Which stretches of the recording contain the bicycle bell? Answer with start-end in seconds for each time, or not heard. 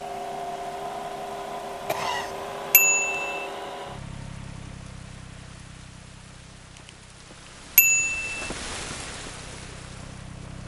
2.7-3.5, 7.8-8.3.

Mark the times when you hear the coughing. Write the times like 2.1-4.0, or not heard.
1.9-2.5.